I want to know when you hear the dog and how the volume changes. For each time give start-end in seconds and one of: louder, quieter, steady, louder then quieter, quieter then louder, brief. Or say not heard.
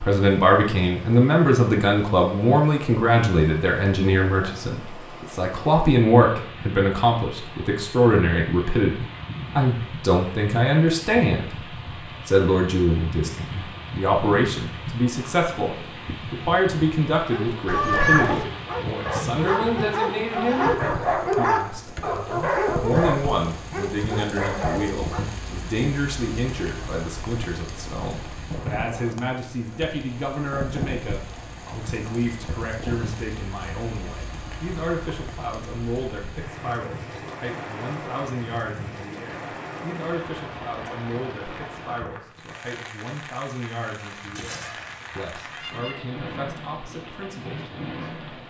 17.2-25.2 louder then quieter.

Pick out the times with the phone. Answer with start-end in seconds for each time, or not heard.
not heard.